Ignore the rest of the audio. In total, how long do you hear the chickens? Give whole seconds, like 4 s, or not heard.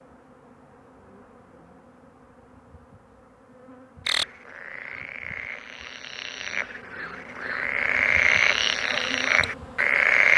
not heard.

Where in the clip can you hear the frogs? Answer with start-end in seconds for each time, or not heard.
4.0-10.3.